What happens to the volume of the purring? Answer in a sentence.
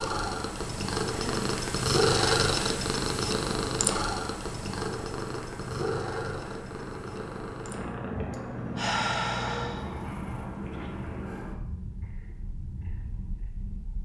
The loudness of the purring goes down.